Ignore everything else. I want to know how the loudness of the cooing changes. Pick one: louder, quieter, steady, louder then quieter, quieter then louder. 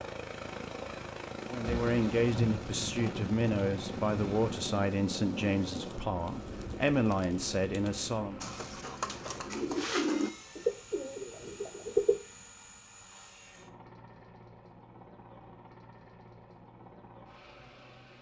louder then quieter.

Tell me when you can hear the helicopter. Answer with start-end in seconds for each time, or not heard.
0.0-18.1.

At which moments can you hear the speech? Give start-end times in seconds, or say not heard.
1.5-8.5.